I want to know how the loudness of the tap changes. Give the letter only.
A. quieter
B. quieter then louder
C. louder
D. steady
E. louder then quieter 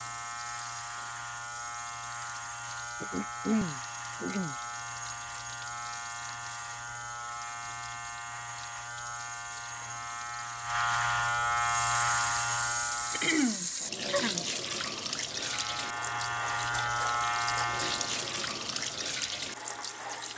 C.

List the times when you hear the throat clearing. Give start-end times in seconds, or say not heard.
3.0-4.5, 13.1-14.4.